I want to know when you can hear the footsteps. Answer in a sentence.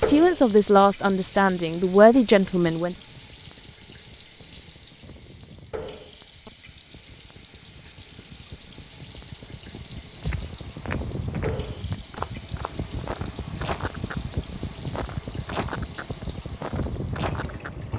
You can hear the footsteps from 10.2 to 17.7 s.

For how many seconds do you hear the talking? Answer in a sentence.
The talking can be heard for 3 seconds in total.